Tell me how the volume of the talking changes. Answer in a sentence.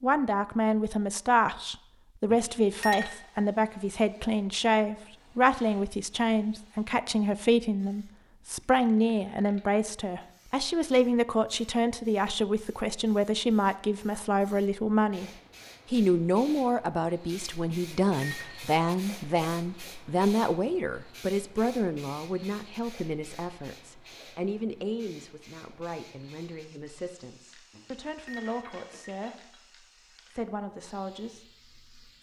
The loudness of the talking goes down.